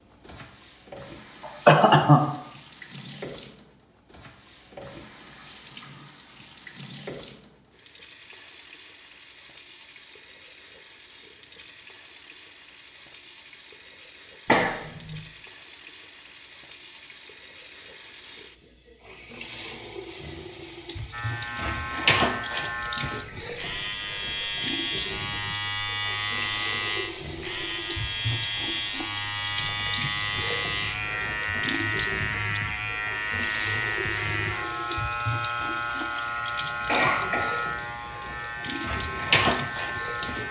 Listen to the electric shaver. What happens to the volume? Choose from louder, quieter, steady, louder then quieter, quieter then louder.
steady.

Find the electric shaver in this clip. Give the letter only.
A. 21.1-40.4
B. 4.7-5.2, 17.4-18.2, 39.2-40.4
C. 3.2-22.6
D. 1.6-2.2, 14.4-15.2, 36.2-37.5
A.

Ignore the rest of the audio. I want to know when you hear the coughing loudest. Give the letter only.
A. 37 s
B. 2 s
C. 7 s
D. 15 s
B.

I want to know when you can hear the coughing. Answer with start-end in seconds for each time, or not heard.
1.6-2.2, 14.4-15.2, 36.2-37.5.